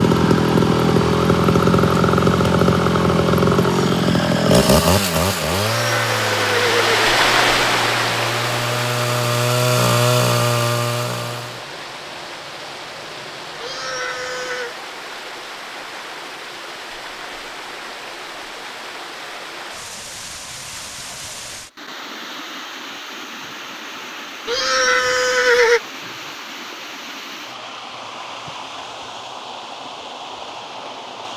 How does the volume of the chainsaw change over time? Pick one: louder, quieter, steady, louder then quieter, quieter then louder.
quieter then louder.